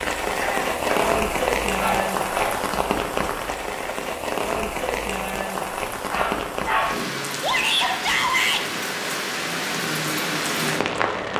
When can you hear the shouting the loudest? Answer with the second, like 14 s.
8 s.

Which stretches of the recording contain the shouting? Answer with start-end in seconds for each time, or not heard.
0.3-0.8, 7.4-8.7.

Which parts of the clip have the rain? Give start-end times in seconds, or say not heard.
0.0-11.3.